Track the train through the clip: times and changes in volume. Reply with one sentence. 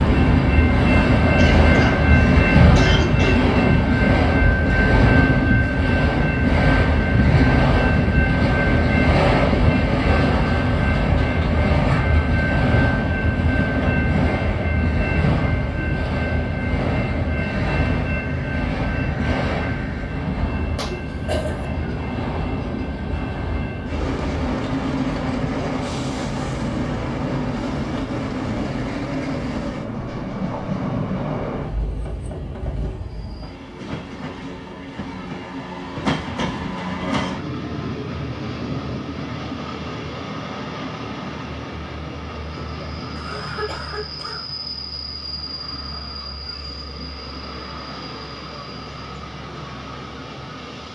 The train can be heard from 0.0 to 50.9 s, getting quieter.